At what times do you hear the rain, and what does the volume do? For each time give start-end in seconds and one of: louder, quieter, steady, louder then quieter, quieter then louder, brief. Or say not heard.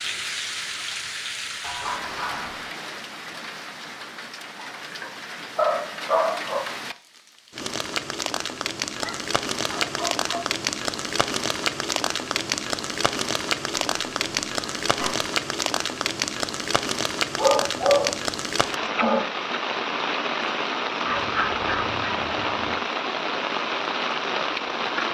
0.0-25.1 louder.